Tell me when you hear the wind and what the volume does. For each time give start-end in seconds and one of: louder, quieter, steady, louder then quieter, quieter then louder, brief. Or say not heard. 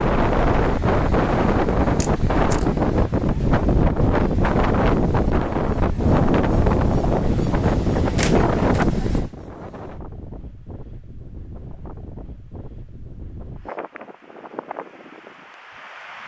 0.0-16.2 quieter.